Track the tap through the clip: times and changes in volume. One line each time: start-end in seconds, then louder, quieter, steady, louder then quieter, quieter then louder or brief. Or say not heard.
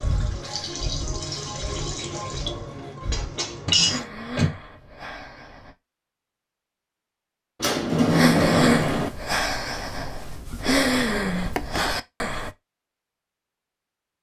0.0-4.0 steady.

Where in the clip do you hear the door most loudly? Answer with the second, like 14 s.
8 s.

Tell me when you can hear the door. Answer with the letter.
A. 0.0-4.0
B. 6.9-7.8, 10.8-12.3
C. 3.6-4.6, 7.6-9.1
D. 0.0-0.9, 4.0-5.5
C.